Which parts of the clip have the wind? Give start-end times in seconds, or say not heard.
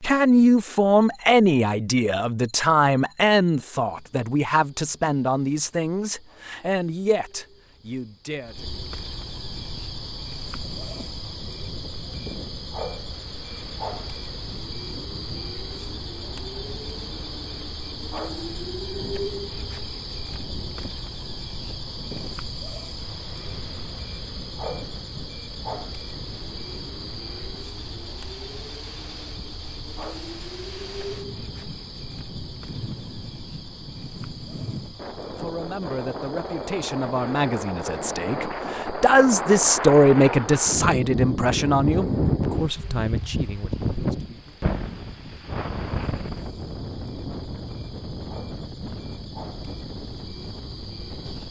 9.4-51.4.